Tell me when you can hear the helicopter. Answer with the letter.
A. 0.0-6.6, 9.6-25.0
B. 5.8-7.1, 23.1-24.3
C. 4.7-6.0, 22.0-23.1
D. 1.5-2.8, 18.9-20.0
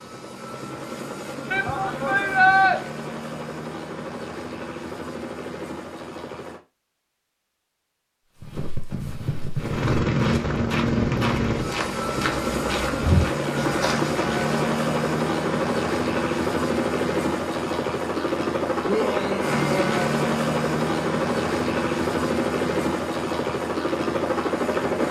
A.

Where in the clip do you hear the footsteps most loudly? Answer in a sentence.
The loudest moment of the footsteps is at 13 seconds.